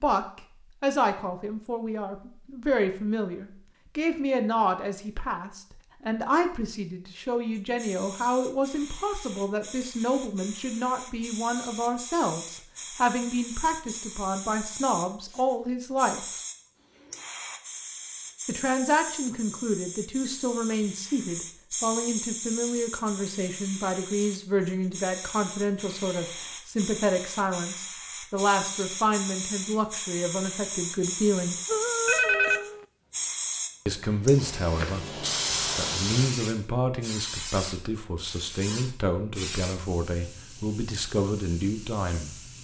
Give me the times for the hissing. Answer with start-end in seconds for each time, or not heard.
7.7-42.5.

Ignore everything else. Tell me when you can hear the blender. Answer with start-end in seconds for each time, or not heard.
not heard.